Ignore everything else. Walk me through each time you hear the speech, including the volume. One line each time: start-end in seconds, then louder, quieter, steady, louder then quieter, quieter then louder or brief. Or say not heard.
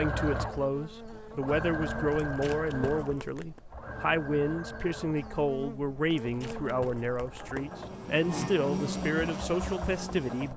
0.0-10.5 steady.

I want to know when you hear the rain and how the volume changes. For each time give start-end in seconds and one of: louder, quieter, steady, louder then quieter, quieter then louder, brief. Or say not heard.
not heard.